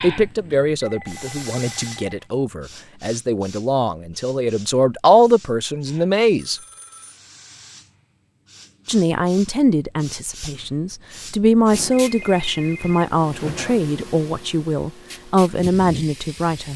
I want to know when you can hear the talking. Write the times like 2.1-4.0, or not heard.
0.0-6.6, 8.8-16.7.